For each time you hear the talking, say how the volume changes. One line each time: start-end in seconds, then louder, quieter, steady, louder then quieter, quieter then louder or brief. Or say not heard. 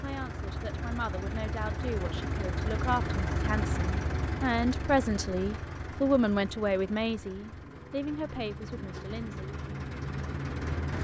0.0-9.6 louder then quieter.